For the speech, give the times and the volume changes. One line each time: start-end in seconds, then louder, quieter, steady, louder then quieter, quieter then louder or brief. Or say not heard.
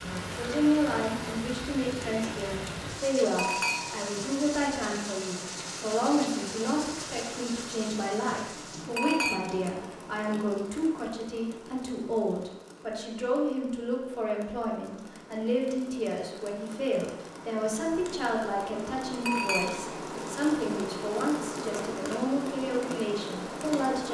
0.0-24.1 steady.